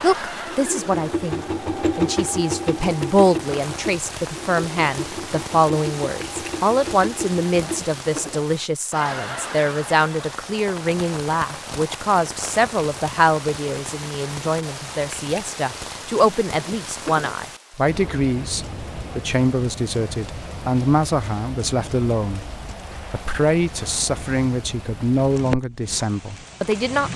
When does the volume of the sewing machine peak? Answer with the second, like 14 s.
2 s.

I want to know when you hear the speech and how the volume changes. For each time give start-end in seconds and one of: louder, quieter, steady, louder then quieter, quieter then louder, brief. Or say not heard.
0.0-27.1 steady.